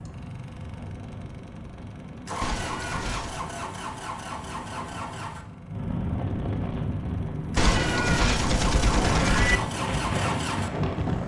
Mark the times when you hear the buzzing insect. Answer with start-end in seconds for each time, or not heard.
not heard.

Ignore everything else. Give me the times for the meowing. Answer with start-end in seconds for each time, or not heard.
2.4-3.5, 7.5-9.6.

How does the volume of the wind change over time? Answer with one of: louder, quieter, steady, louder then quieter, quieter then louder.
louder.